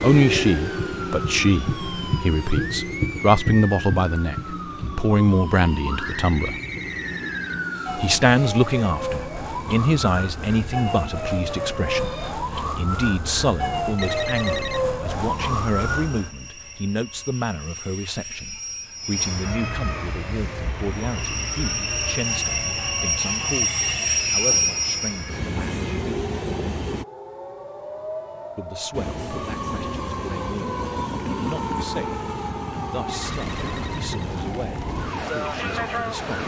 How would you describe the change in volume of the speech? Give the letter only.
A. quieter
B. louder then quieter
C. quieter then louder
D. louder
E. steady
A.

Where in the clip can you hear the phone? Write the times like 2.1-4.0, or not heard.
6.0-8.1, 13.9-14.8, 33.2-34.1.